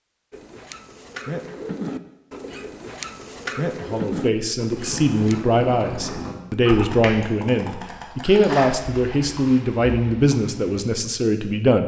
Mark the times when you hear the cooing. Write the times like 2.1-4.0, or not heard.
0.3-5.5.